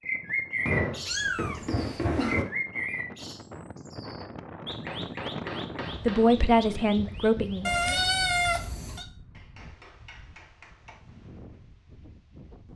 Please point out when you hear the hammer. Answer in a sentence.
The hammer can be heard from 0.7 to 2.5 s, from 4.8 to 6.3 s and from 9.3 to 11.0 s.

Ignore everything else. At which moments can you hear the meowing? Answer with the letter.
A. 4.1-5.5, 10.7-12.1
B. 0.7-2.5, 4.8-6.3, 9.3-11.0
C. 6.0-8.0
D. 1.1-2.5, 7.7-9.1
D.